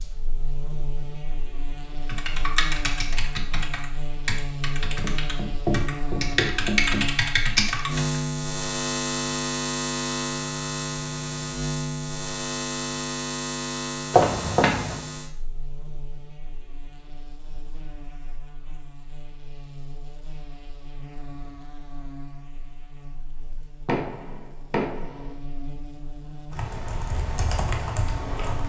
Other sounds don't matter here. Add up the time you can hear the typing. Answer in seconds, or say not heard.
8 s.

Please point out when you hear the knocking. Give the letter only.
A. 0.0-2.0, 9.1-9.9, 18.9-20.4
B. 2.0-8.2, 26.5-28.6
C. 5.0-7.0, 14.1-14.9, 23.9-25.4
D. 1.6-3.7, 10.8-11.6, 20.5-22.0
C.